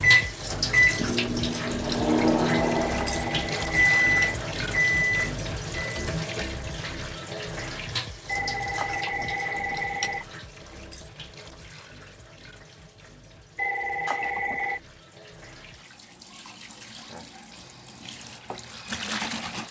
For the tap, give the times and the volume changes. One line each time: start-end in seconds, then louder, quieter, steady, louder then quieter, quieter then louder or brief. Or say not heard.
0.0-19.6 quieter then louder.